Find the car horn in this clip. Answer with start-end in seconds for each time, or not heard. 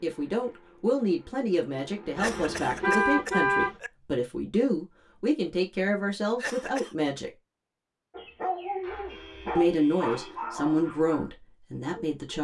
2.1-3.8, 9.1-10.7.